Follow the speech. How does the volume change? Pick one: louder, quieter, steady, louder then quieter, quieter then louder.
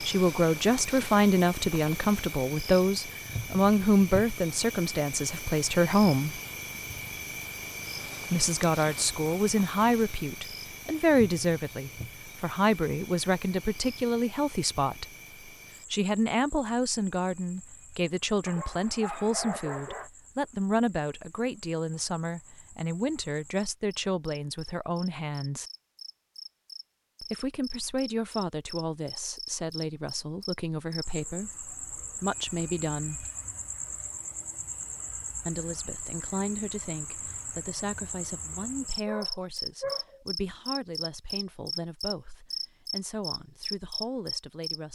quieter.